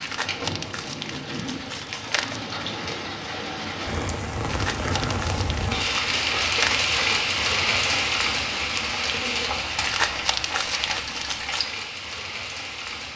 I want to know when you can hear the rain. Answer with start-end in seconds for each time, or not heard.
0.0-13.1.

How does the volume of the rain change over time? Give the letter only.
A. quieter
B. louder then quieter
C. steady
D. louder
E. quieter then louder
B.